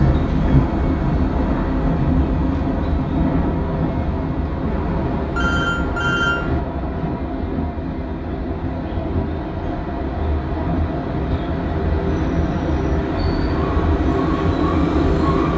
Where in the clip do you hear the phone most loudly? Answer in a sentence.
The volume of the phone peaks at 6 seconds.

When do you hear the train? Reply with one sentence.
You can hear the train from 0.0 to 15.5 s.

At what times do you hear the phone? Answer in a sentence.
The phone can be heard from 4.7 to 6.6 s.